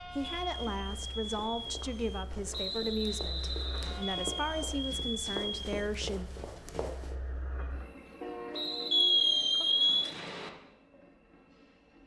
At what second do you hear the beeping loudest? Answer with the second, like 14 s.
9 s.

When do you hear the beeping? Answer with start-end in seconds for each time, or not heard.
0.5-2.2, 4.2-5.9, 8.9-10.2.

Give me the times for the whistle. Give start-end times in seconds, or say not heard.
2.5-4.0, 8.5-10.5.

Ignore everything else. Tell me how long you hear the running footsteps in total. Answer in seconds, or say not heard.
7 s.